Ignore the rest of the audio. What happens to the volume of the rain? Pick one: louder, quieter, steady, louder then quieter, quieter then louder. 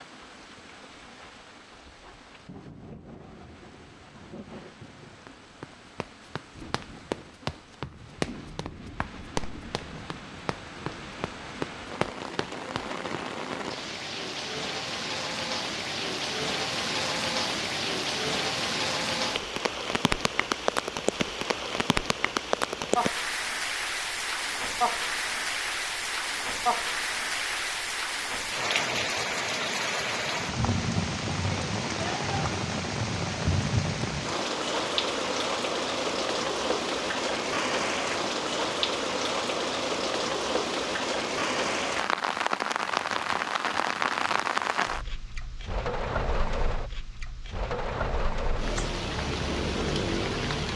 louder.